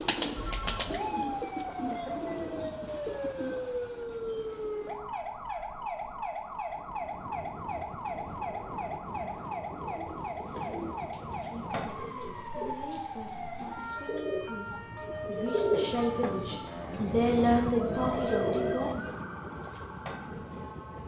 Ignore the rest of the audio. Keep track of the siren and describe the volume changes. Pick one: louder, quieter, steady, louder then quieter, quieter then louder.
quieter.